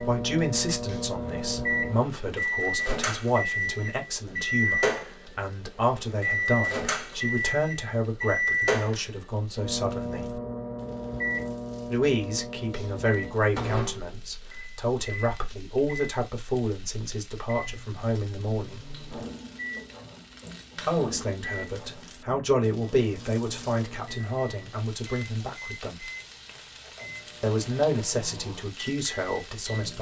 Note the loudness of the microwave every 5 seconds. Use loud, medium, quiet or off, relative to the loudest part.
loud, loud, medium, medium, quiet, quiet.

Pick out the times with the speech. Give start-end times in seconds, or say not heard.
0.0-10.4, 11.8-18.9, 20.9-26.1, 27.4-29.9.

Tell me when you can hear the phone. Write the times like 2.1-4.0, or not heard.
not heard.